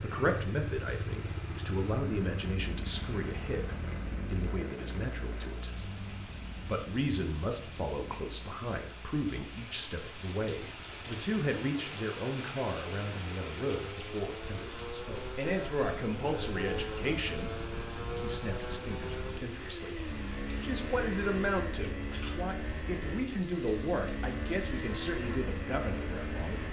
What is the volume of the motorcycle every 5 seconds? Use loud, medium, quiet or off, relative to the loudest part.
loud, medium, medium, loud, loud, loud.